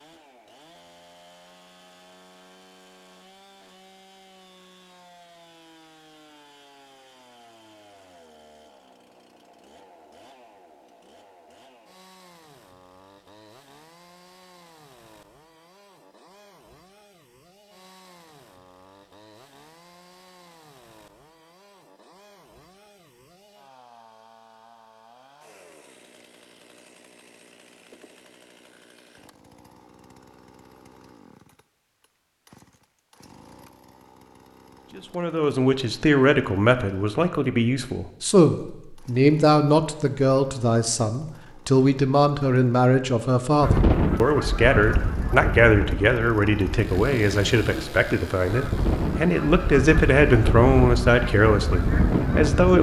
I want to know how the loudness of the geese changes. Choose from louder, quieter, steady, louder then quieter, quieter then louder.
quieter then louder.